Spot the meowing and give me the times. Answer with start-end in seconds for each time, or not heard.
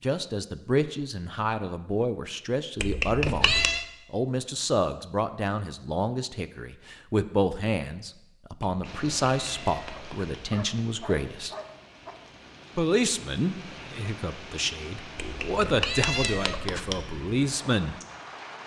2.8-3.9, 8.6-10.2, 15.2-17.1.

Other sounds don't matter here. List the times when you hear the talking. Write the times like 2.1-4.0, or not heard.
0.0-11.6, 12.8-17.9.